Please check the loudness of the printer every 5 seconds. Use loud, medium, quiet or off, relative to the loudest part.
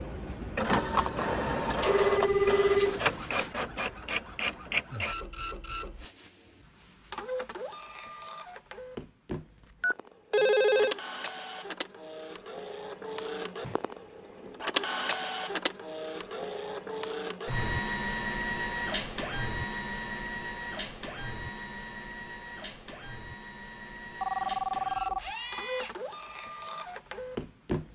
loud, medium, medium, loud, medium, medium.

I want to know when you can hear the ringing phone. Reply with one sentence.
The ringing phone can be heard from 1.4 to 3.5 s, from 9.8 to 10.9 s and from 24.2 to 26.0 s.